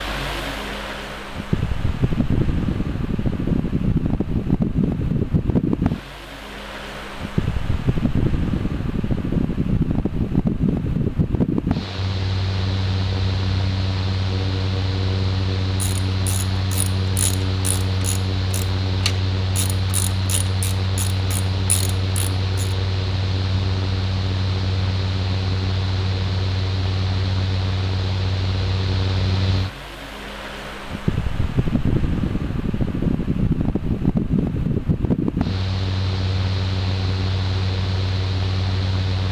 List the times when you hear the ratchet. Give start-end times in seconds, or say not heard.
15.8-22.8.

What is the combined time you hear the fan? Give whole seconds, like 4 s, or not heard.
39 s.